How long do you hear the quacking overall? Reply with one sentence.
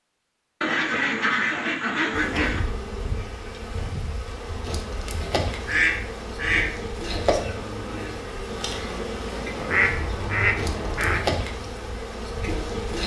The quacking can be heard for 5 seconds in total.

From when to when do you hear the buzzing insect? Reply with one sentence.
The buzzing insect can be heard from 2.1 to 13.0 s.